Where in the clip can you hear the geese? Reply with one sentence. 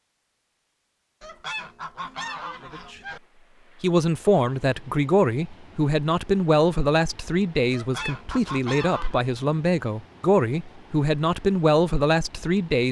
The geese can be heard from 1.2 to 3.2 s and from 7.7 to 9.2 s.